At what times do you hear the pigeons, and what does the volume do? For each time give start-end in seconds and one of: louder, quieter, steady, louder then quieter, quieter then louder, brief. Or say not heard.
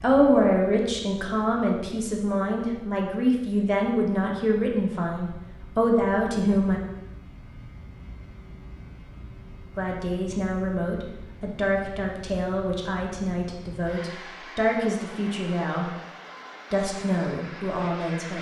not heard.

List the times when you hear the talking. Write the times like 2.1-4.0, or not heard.
0.0-6.8, 9.8-15.9, 16.7-18.3.